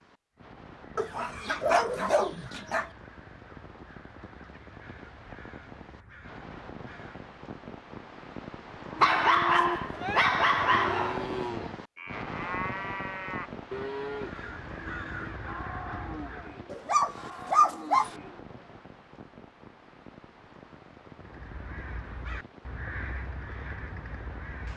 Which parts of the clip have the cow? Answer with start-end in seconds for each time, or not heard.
9.0-18.4.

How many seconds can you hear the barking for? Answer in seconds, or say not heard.
6 s.